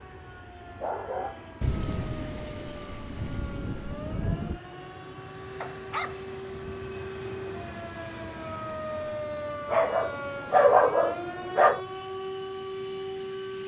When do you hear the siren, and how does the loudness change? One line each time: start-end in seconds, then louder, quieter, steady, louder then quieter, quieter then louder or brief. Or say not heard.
0.0-13.6 louder.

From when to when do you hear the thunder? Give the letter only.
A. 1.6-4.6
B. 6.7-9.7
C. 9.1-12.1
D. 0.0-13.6
A.